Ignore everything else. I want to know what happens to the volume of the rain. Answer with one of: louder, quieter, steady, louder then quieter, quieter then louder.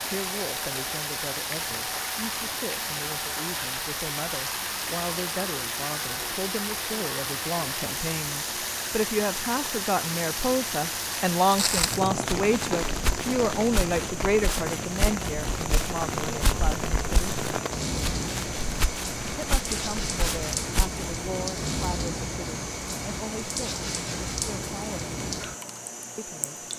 steady.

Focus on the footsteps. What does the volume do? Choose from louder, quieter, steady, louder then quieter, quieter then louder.
steady.